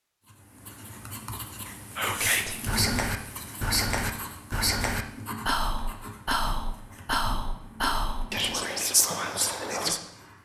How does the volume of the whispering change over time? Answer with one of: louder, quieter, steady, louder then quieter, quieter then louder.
steady.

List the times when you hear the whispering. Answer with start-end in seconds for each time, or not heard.
1.9-10.0.